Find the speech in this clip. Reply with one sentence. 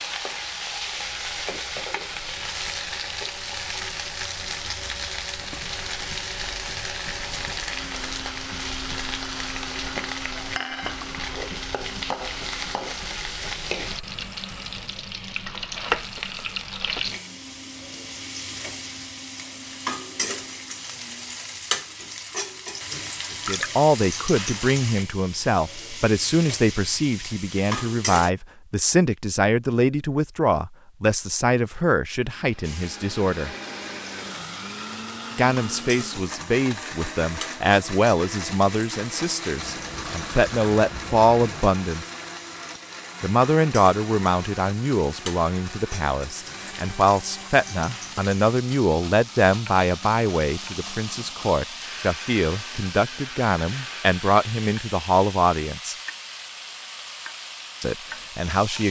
You can hear the speech from 23.4 to 33.5 s, from 35.4 to 42.0 s, from 43.2 to 56.0 s and from 57.8 to 58.8 s.